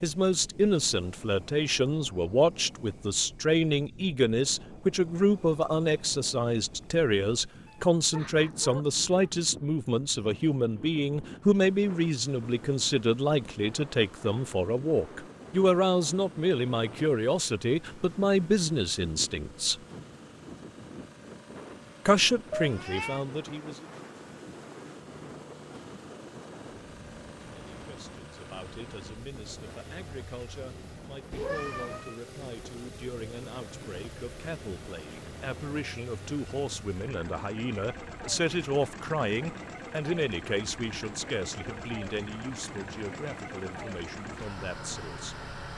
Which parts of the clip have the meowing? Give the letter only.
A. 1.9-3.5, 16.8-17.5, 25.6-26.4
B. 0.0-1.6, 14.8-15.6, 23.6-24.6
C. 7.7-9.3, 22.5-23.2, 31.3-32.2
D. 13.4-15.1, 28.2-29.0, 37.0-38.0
C.